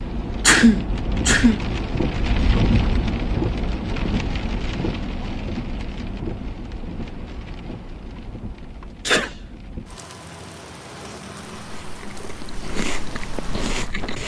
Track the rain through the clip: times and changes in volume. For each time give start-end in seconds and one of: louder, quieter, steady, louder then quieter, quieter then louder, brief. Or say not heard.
0.0-14.2 quieter.